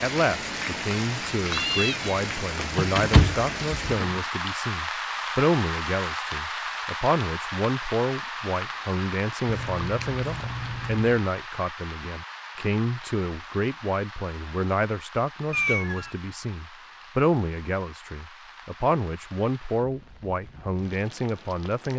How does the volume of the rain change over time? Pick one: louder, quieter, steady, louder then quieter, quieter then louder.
quieter.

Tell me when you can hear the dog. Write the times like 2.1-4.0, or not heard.
not heard.